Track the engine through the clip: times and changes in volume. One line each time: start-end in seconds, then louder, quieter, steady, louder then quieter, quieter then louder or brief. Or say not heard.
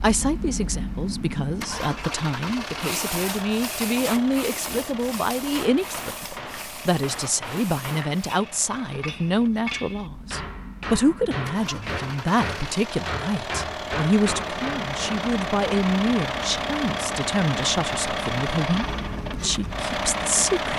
0.0-20.7 quieter then louder.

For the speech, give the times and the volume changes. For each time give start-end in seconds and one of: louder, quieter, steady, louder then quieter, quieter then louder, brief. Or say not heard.
0.0-20.7 steady.